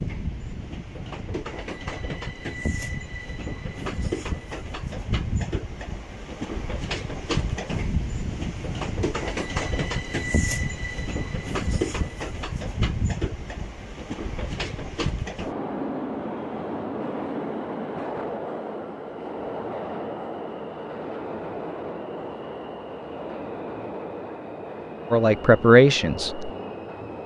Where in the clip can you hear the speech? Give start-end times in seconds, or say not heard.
25.1-26.5.